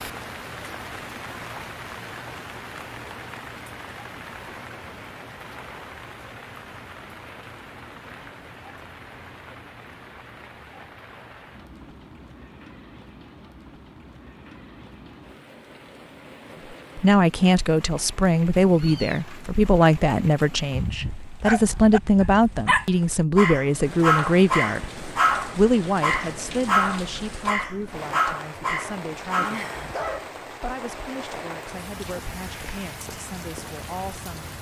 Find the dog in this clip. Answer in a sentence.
You can hear the dog from 20.7 to 30.2 s.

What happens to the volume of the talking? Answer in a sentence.
The loudness of the talking goes down.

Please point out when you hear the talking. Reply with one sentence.
You can hear the talking from 16.9 to 34.5 s.